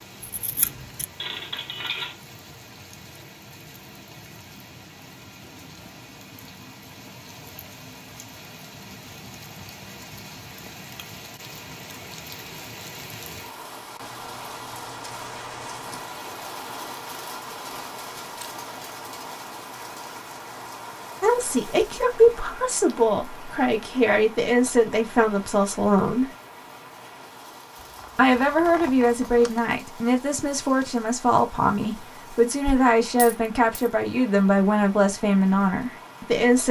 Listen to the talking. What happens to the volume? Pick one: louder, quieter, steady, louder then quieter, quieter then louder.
steady.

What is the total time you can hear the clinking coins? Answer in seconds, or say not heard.
4 s.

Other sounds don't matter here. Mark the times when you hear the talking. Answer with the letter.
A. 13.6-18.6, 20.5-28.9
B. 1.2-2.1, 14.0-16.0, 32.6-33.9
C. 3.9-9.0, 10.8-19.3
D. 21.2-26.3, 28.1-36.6
D.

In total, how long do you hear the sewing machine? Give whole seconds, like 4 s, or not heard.
not heard.